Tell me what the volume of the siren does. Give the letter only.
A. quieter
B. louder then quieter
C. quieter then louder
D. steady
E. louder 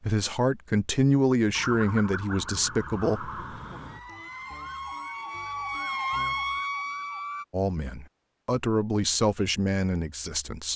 E.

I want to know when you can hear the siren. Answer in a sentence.
You can hear the siren from 1.6 to 7.5 s.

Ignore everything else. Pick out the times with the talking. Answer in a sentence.
You can hear the talking from 0.0 to 3.3 s and from 7.5 to 10.7 s.